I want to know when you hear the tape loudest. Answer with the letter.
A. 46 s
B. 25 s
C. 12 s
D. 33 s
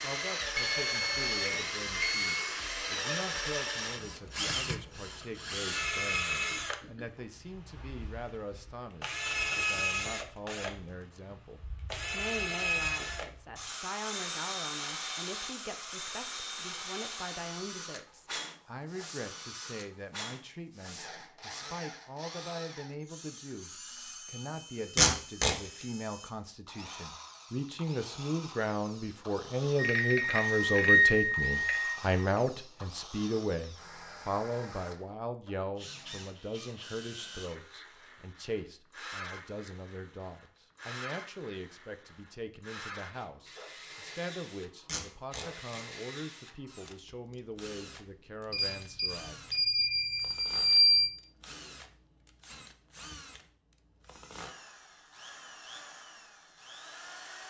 B.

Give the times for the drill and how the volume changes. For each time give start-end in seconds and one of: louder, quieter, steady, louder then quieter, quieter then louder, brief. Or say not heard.
0.0-57.4 quieter.